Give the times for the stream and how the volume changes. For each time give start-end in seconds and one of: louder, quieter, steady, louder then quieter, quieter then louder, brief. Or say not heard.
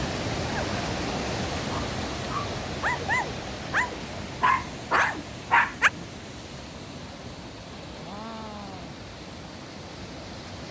0.0-10.6 quieter.